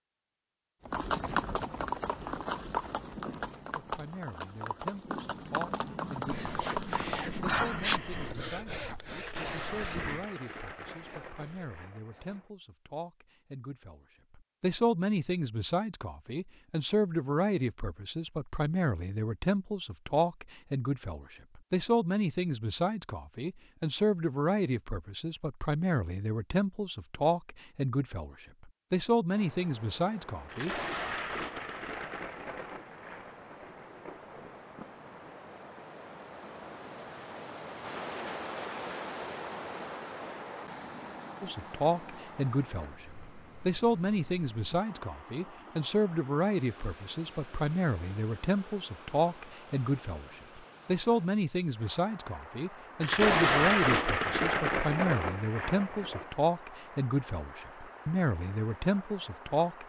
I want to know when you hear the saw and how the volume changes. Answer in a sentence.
You can hear the saw from 6.2 to 12.4 s, getting quieter.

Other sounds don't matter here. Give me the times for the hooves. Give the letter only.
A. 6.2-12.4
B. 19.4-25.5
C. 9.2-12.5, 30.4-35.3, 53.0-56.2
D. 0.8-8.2
D.